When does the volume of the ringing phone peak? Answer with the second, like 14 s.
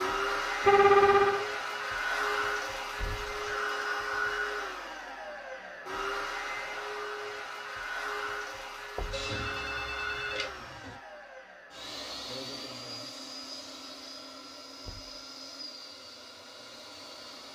1 s.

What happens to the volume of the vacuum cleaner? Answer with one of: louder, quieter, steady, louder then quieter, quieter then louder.
quieter.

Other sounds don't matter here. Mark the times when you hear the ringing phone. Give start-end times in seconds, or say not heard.
0.6-1.4, 9.1-10.9.